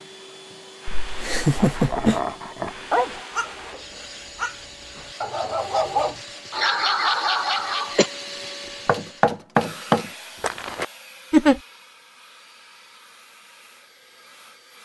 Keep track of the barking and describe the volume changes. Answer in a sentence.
The loudness of the barking goes down, then up.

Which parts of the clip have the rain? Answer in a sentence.
The rain can't be heard in this clip.